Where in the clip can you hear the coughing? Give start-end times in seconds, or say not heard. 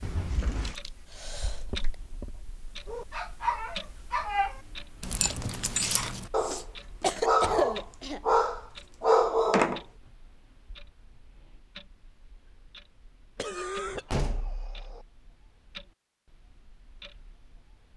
0.3-1.9, 6.4-8.2, 13.3-14.1.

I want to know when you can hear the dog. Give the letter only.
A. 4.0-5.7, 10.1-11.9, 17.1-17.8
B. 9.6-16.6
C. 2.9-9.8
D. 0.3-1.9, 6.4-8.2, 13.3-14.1
C.